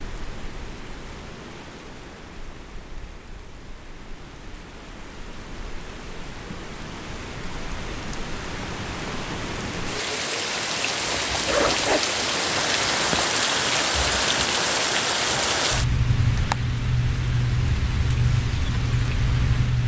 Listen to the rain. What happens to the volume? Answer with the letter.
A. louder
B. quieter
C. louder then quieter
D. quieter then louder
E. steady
A.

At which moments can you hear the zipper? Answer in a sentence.
You can hear the zipper from 11.1 to 12.0 s.